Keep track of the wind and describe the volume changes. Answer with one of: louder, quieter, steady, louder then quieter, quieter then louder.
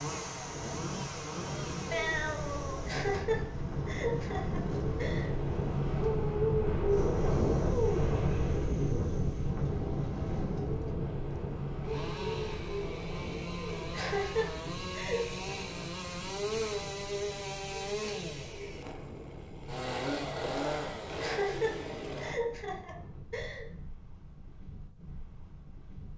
louder then quieter.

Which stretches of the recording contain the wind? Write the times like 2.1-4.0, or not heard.
0.0-26.1.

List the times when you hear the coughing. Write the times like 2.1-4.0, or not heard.
2.9-5.3, 13.9-15.3, 21.2-23.6.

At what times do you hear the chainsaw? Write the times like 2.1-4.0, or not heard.
0.0-22.4.